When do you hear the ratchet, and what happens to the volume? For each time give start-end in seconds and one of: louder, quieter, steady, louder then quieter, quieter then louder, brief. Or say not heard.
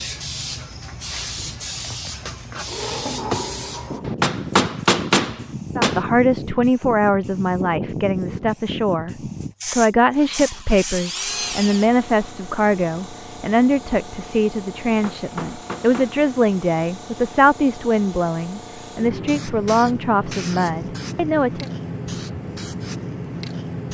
not heard.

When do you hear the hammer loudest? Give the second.
5 s.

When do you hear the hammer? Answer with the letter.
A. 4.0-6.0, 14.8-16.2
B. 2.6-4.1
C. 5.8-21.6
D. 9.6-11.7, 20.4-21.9
A.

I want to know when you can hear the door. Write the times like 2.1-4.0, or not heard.
2.6-4.1.